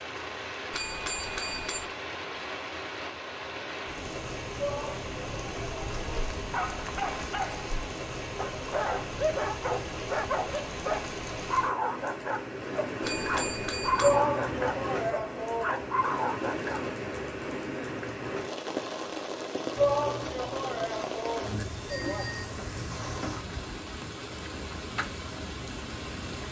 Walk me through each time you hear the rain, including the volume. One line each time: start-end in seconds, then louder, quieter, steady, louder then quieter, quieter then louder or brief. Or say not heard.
0.0-26.4 steady.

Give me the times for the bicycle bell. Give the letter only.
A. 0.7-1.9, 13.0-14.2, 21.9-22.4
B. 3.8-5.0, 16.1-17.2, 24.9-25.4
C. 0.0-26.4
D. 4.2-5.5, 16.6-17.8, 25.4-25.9
A.